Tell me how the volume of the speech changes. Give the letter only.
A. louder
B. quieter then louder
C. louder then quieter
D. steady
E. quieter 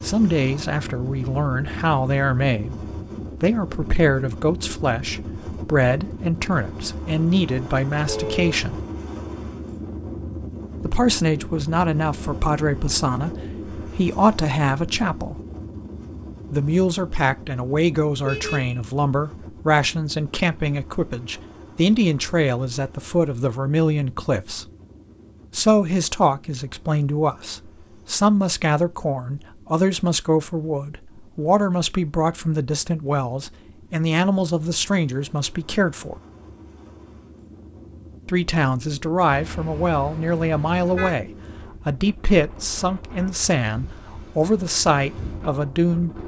D.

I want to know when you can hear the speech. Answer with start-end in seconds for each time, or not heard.
0.0-8.8, 10.8-15.4, 16.5-24.6, 25.6-36.1, 38.2-46.2.